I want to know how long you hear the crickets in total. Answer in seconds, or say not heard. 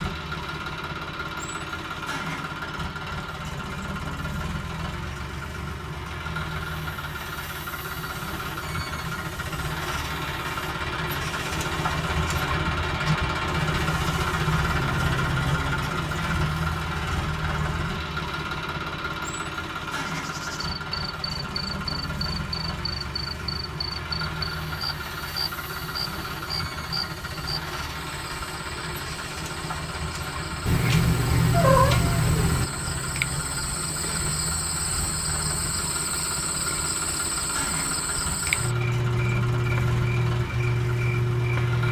22 s.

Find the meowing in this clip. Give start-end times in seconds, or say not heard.
30.6-32.6.